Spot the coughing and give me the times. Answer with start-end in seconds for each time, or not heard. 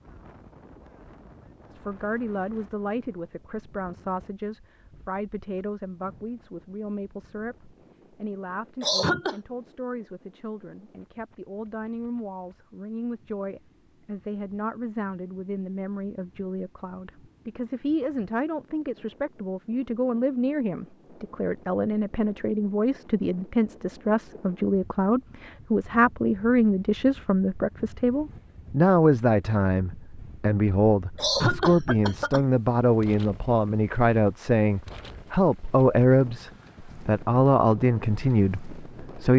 8.8-9.4, 31.1-32.5.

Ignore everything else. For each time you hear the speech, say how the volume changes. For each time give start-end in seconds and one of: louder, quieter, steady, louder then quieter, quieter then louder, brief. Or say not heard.
1.7-39.3 louder.